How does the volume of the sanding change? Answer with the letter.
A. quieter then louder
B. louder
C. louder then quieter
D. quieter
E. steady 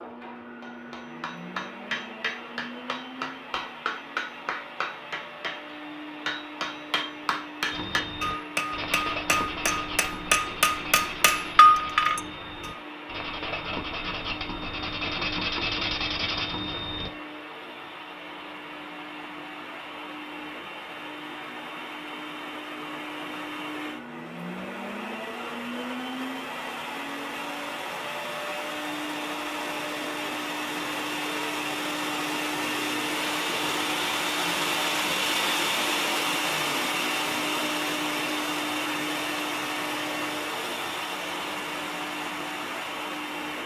A.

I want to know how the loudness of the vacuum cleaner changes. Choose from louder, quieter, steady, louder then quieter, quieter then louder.
louder.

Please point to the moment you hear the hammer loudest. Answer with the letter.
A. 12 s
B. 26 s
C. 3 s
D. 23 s
A.